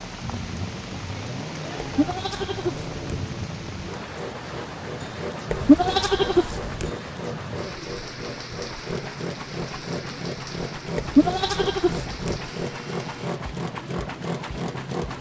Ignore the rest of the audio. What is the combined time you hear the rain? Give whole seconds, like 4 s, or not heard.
15 s.